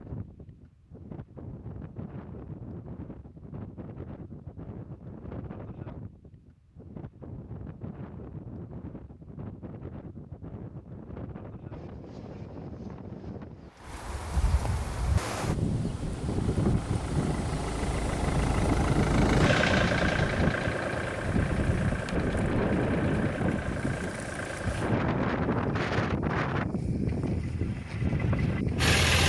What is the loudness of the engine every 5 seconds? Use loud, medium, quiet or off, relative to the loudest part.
off, off, off, loud, loud, loud.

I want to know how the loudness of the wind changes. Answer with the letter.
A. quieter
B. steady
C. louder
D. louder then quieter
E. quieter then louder
C.